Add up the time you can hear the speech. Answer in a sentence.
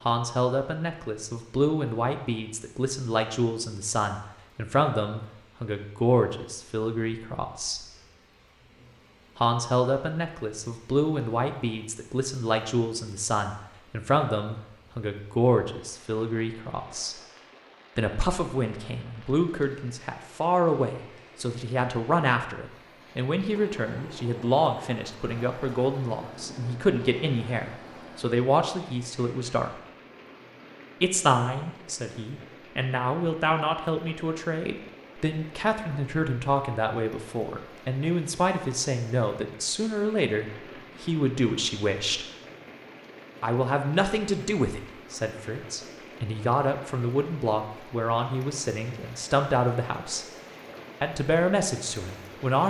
You can hear the speech for 47 seconds altogether.